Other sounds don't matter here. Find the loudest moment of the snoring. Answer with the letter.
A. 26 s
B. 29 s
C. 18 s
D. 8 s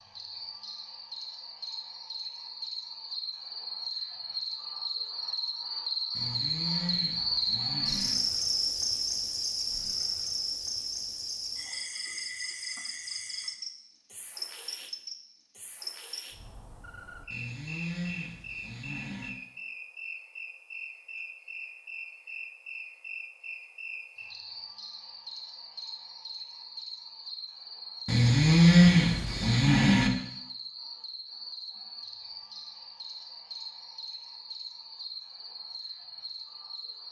B.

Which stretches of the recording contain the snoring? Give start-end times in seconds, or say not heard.
6.2-8.2, 17.3-19.3, 28.1-30.1.